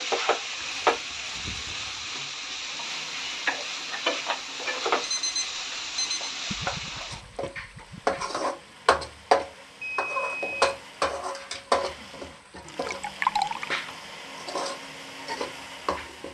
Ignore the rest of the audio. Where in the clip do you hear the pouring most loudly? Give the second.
13 s.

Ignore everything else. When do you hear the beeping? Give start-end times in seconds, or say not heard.
5.0-6.2, 9.8-10.6.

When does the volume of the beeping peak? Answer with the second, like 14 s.
5 s.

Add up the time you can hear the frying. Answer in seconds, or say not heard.
16 s.